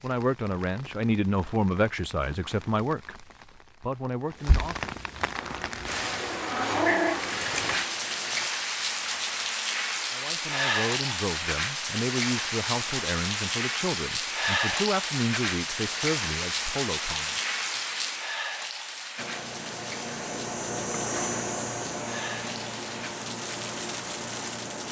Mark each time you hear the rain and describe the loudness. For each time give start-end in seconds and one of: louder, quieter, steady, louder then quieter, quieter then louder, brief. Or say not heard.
0.0-24.8 louder then quieter.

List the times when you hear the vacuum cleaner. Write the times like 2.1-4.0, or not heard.
5.3-8.5, 19.1-24.8.